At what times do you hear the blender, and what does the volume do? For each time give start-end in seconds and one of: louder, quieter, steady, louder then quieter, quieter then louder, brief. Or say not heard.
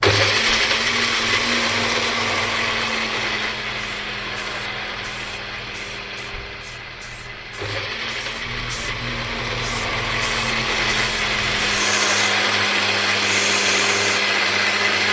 0.0-15.0 quieter then louder.